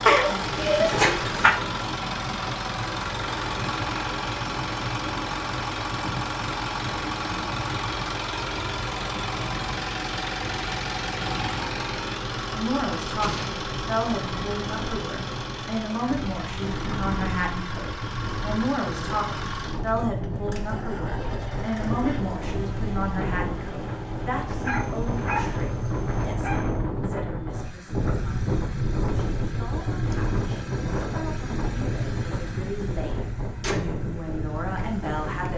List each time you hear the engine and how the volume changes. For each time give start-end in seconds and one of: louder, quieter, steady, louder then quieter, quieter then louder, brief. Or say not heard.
0.0-35.5 quieter.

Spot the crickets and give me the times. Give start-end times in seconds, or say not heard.
not heard.